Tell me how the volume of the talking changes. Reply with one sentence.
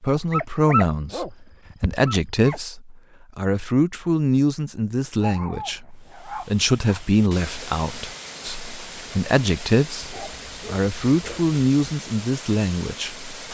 The volume of the talking stays about the same.